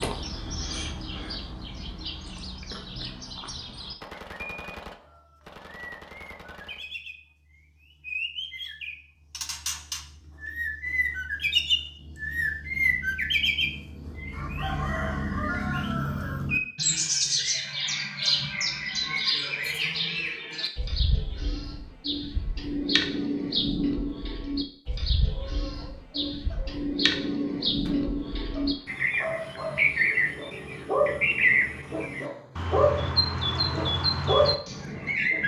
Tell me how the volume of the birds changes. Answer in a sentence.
The loudness of the birds goes up.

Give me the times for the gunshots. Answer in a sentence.
You can hear the gunshots from 4.0 to 6.8 s and from 27.9 to 29.1 s.